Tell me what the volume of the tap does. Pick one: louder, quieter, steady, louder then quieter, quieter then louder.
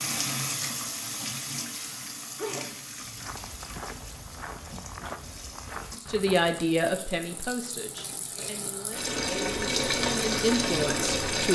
quieter then louder.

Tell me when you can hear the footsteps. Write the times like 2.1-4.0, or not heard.
3.0-6.5.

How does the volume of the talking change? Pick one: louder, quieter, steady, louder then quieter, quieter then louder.
quieter then louder.